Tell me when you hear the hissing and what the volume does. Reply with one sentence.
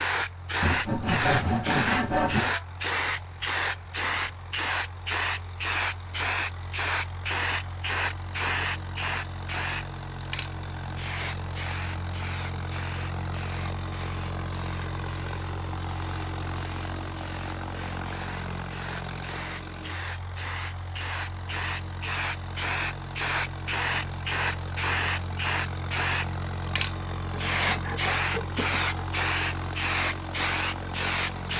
The hissing can be heard from 0.0 to 31.5 s, getting quieter then louder.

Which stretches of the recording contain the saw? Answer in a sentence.
You can hear the saw from 0.6 to 2.5 s and from 27.3 to 29.1 s.